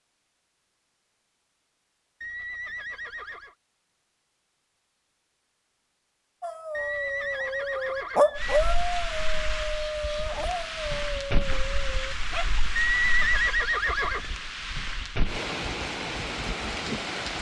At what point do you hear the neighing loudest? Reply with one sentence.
The volume of the neighing peaks at 13 seconds.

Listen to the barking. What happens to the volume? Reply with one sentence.
The loudness of the barking goes up, then down.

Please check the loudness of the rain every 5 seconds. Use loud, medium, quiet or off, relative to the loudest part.
off, loud, loud, loud.